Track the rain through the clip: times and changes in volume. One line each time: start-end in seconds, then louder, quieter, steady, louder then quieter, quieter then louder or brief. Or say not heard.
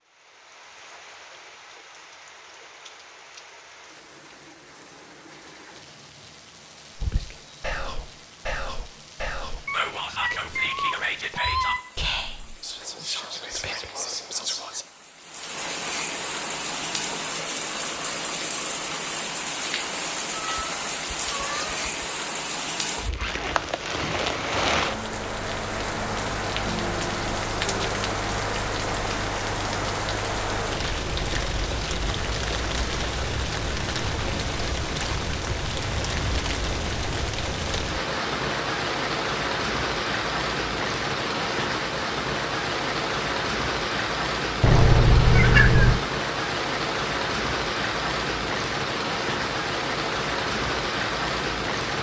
0.0-51.9 louder.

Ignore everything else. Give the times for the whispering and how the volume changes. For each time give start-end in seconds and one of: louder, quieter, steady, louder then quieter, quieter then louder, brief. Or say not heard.
7.0-14.8 steady.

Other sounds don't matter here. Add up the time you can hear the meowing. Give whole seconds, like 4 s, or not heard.
5 s.